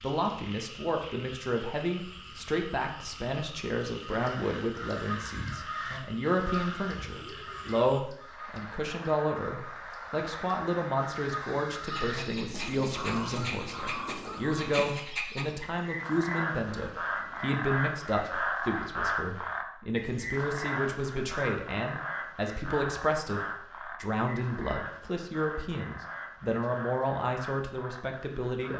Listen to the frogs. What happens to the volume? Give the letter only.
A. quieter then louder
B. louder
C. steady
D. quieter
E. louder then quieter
E.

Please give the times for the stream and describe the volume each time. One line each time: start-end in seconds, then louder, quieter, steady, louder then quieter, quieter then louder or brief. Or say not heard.
not heard.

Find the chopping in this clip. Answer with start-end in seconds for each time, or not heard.
not heard.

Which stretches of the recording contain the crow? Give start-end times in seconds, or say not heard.
4.0-14.8.